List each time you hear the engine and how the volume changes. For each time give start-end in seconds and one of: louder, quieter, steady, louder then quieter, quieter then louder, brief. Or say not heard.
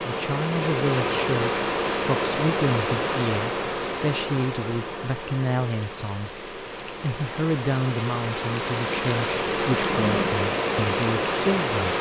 0.0-11.9 quieter then louder.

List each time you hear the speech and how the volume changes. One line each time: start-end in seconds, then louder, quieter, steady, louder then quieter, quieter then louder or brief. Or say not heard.
0.0-11.9 steady.